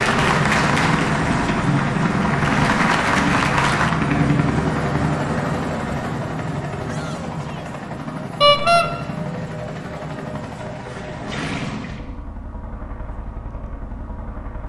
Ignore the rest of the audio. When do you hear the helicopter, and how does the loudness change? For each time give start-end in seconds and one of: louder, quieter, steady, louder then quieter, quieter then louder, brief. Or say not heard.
0.0-14.6 quieter.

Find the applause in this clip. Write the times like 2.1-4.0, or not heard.
0.0-3.9.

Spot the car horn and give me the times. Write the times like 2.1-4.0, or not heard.
8.4-8.8.